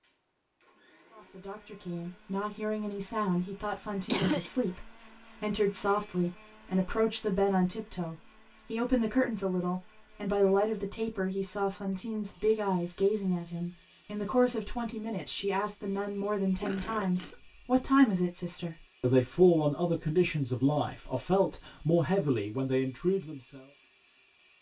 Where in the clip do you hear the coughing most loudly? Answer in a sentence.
The volume of the coughing peaks at 4 seconds.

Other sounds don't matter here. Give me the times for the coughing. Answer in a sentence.
The coughing can be heard from 3.6 to 4.5 s and from 16.6 to 17.4 s.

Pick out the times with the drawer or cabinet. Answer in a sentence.
The drawer or cabinet can't be heard in this clip.